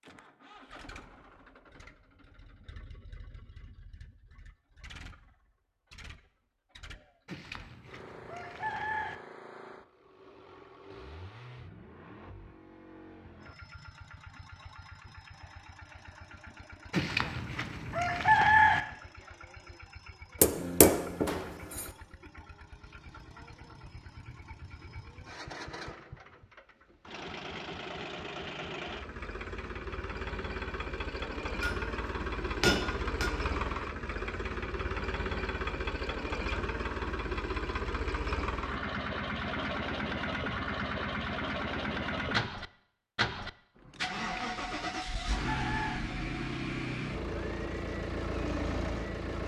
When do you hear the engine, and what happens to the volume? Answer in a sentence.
You can hear the engine from 0.0 to 49.4 s, getting louder.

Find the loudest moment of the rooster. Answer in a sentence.
The volume of the rooster peaks at 18 seconds.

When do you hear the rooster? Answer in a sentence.
You can hear the rooster from 7.2 to 9.2 s, from 16.9 to 18.8 s and from 44.1 to 46.0 s.